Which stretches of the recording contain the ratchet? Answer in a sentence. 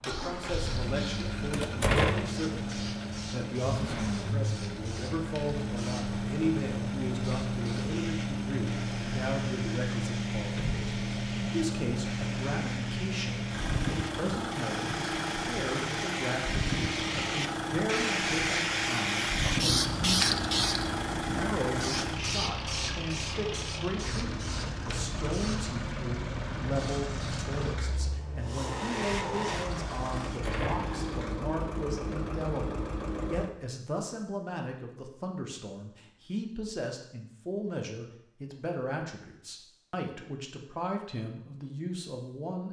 You can't hear the ratchet here.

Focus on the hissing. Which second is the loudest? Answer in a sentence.
The volume of the hissing peaks at 20 seconds.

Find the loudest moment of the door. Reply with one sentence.
The loudest moment of the door is at 2 seconds.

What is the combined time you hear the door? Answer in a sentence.
You can hear the door for 2 seconds altogether.